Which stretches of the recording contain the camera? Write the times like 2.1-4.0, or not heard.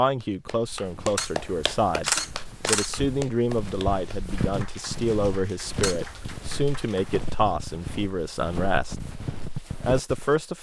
1.1-3.1, 5.8-6.5.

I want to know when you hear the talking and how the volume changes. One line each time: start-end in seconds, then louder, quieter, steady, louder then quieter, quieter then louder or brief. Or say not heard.
0.0-10.5 steady.